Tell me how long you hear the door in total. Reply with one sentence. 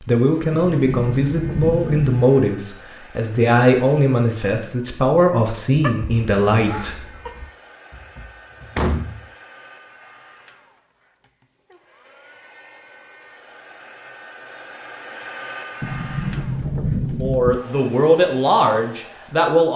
The door can be heard for 5 seconds in total.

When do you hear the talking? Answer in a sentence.
The talking can be heard from 0.0 to 7.0 s and from 17.2 to 19.7 s.